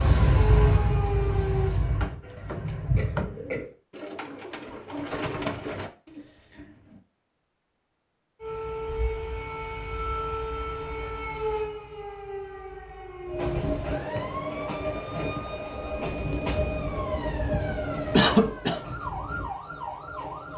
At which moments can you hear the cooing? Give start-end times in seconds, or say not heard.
2.2-7.0.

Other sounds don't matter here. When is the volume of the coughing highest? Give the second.
18 s.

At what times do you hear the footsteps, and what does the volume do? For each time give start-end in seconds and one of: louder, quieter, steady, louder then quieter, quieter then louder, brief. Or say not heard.
not heard.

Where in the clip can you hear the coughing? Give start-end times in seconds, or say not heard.
2.0-3.7, 17.7-18.9.